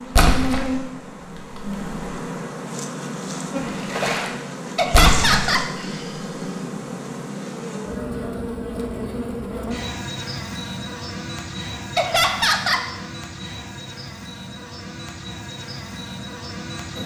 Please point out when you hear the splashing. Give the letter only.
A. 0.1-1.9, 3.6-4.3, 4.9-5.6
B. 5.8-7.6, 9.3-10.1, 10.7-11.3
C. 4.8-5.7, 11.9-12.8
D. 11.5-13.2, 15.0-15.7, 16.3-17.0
A.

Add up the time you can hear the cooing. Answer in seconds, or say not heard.
not heard.